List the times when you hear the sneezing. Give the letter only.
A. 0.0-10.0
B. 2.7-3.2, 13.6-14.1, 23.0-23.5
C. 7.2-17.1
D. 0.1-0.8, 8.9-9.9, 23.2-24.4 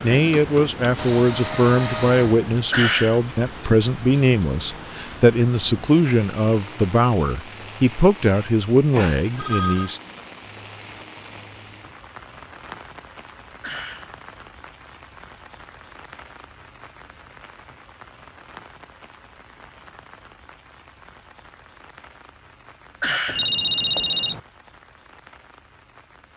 B.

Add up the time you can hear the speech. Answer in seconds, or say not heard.
10 s.